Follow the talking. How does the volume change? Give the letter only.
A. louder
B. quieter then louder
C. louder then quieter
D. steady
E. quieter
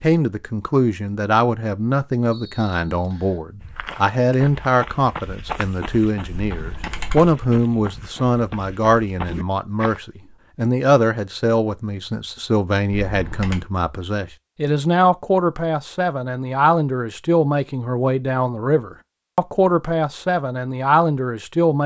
D.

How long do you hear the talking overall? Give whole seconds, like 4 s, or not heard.
22 s.